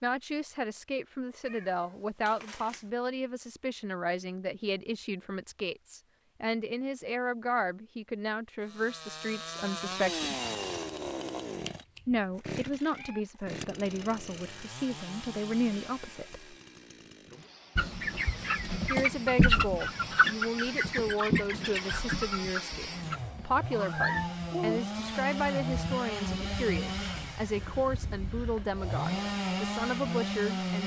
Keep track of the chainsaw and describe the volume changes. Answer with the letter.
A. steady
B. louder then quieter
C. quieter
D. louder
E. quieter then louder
E.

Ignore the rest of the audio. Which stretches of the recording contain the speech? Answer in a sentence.
The speech can be heard from 0.0 to 10.3 s, from 12.1 to 16.4 s and from 18.9 to 30.8 s.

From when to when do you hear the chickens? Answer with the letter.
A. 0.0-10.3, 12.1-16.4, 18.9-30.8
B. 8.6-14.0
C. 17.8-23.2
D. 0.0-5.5
C.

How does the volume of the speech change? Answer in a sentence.
The loudness of the speech stays about the same.